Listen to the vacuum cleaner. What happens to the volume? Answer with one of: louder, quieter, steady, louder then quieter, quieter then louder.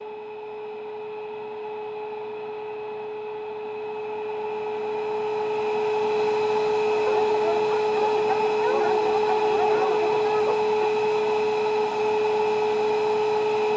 louder.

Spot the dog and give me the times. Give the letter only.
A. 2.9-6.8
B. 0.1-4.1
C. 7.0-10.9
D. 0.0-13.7
C.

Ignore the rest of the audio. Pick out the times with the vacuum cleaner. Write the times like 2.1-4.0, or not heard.
0.0-13.7.